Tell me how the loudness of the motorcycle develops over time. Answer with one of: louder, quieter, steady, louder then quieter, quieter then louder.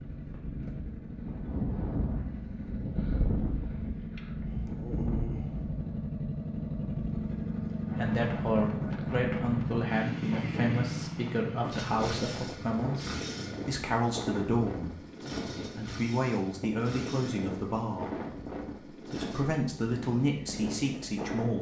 louder then quieter.